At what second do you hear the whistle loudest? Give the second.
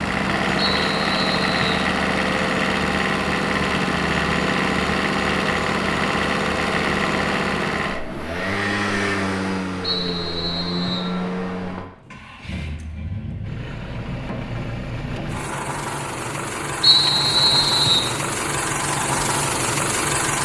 17 s.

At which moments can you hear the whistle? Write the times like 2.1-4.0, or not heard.
0.8-1.9, 9.8-11.2, 16.8-18.1.